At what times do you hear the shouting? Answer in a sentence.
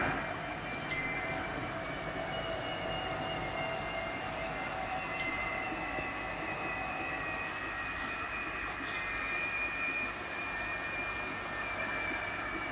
You can't hear the shouting here.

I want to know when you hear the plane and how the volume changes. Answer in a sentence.
You can hear the plane from 0.0 to 12.6 s, at a steady volume.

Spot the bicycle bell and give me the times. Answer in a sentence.
You can hear the bicycle bell from 0.9 to 1.4 s, from 5.2 to 5.7 s and from 8.9 to 9.4 s.